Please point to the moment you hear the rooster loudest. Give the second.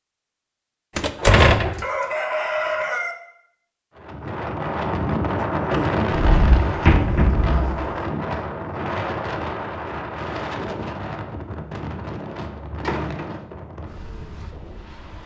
3 s.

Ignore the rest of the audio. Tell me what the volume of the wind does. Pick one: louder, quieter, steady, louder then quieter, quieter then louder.
quieter.